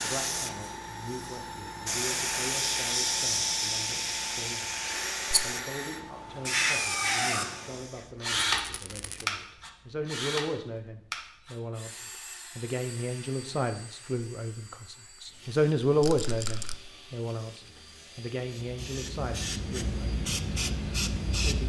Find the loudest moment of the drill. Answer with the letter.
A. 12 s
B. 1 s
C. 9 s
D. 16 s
C.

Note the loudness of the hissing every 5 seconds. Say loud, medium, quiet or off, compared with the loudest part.
loud, loud, off, medium, loud.